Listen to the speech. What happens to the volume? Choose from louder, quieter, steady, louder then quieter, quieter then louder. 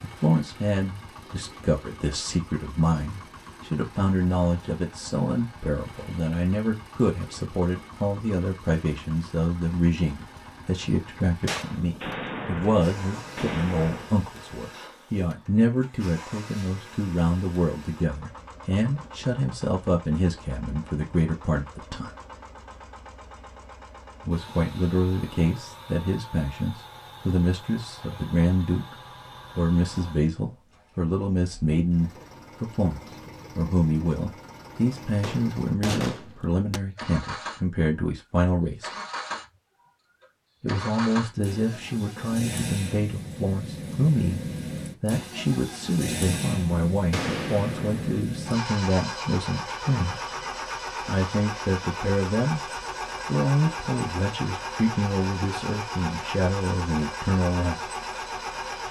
steady.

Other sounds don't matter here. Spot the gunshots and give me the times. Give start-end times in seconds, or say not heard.
11.4-14.2, 35.2-36.8, 47.1-48.2.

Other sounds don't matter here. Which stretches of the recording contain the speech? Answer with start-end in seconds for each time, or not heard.
0.0-22.1, 24.2-28.9, 29.6-38.9, 40.6-50.2, 51.0-57.8.